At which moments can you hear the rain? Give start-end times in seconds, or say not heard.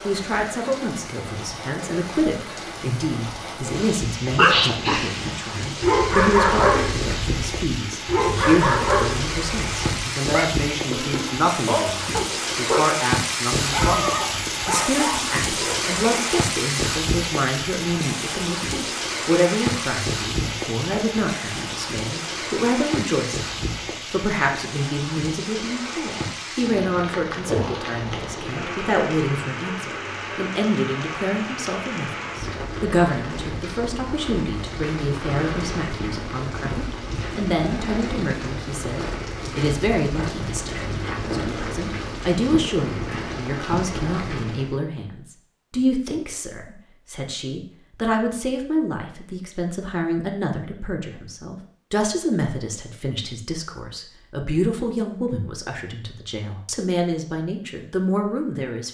0.0-44.8.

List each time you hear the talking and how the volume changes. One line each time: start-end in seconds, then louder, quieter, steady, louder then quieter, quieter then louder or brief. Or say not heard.
0.1-58.9 steady.